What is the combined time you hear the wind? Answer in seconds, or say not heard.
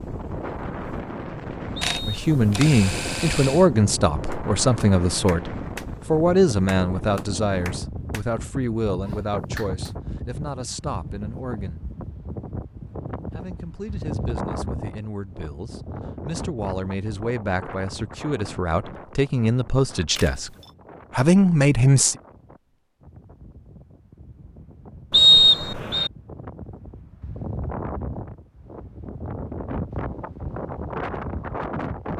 32 s.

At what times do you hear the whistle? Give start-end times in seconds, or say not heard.
1.8-2.5, 25.1-26.1.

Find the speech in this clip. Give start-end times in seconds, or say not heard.
2.0-11.8, 13.3-20.5, 21.1-22.1.